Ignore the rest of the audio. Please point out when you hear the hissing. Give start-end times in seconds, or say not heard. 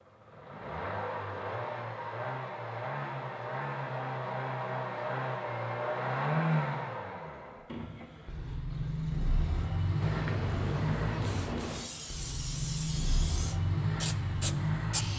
10.0-15.1.